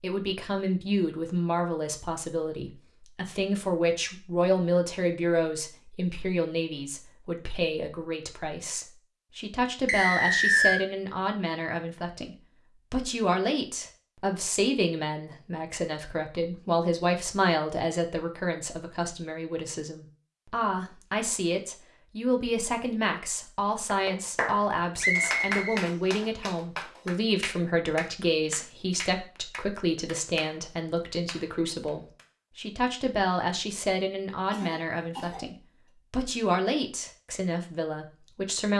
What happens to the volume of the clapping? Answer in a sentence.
The loudness of the clapping goes down.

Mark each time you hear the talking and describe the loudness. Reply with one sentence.
The talking can be heard from 0.0 to 38.7 s, at a steady volume.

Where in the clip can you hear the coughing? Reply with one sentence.
You can hear the coughing from 34.5 to 35.5 s.